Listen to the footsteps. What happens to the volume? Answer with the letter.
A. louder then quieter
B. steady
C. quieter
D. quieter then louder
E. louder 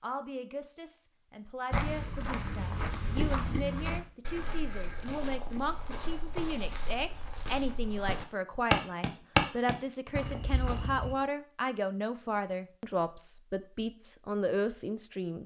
D.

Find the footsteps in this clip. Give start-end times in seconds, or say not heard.
1.7-11.2.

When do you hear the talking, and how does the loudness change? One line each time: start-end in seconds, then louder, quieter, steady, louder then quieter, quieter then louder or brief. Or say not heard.
0.0-15.4 louder.